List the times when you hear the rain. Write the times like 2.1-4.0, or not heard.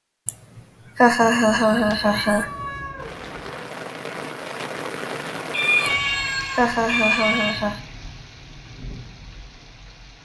3.0-10.2.